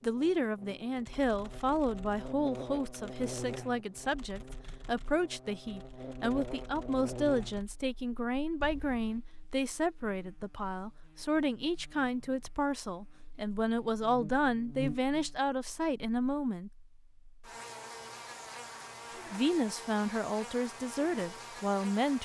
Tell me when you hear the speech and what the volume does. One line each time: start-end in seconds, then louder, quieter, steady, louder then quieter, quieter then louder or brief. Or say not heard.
0.0-16.7 steady
19.3-22.2 brief.